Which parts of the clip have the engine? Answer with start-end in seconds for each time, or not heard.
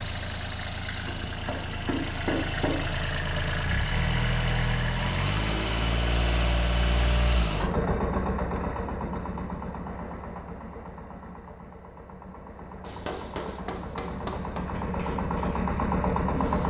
0.0-16.6.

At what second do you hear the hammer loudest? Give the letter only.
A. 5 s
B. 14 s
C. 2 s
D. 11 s
C.